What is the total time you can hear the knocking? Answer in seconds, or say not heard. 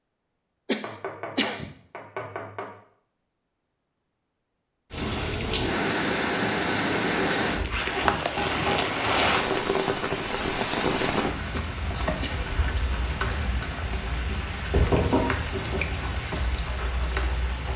4 s.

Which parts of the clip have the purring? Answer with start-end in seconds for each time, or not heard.
not heard.